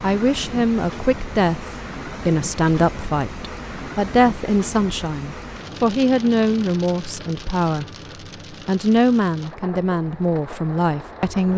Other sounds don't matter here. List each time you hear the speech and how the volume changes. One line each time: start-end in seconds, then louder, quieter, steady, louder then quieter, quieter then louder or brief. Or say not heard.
0.0-7.8 steady
8.7-11.5 brief.